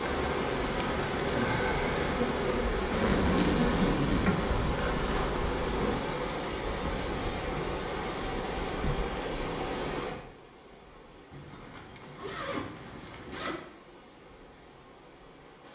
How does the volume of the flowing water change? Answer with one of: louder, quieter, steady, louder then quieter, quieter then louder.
quieter.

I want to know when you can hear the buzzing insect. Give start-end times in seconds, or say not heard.
0.0-6.0.